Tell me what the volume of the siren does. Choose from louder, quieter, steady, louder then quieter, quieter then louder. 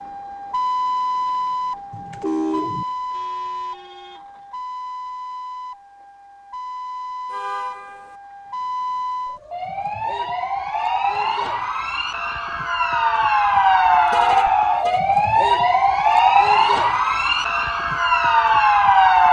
quieter then louder.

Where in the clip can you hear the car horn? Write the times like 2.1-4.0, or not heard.
1.9-2.9, 7.3-8.2, 14.1-15.0.